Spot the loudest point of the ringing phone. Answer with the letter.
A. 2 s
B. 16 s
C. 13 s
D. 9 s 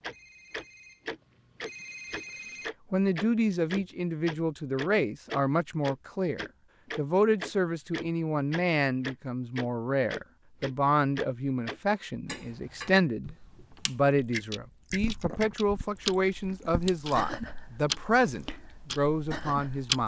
A.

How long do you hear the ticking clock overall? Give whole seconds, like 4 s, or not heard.
20 s.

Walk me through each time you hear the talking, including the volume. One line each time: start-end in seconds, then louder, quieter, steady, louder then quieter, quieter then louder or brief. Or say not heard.
2.9-20.0 steady.